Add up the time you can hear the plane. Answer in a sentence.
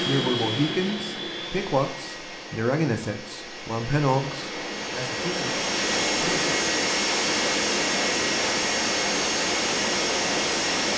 The plane can be heard for 11 seconds in total.